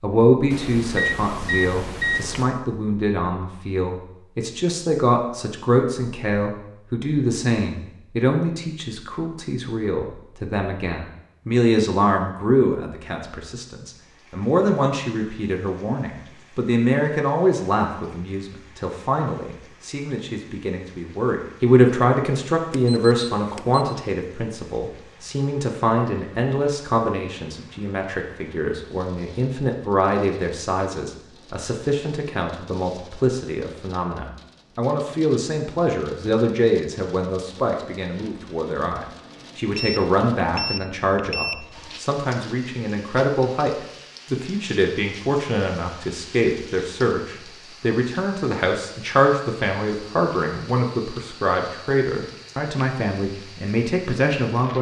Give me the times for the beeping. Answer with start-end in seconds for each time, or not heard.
0.5-2.5, 22.7-23.9, 39.8-42.0.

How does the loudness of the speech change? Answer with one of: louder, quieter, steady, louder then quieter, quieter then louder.
steady.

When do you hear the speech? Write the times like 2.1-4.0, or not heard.
0.0-54.7.